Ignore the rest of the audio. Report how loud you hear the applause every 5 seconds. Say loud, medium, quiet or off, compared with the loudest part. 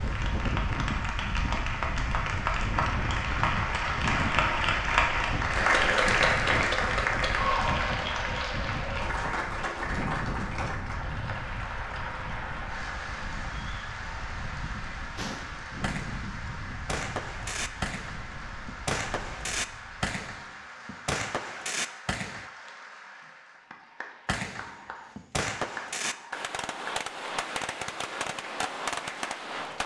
loud, loud, medium, quiet, quiet, quiet.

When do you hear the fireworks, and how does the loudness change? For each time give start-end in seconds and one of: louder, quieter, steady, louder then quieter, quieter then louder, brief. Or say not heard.
15.2-22.5 louder
24.2-29.8 steady.